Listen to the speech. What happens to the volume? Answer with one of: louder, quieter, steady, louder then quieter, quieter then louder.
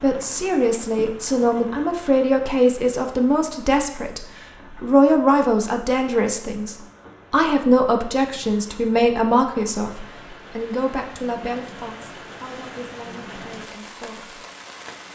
quieter.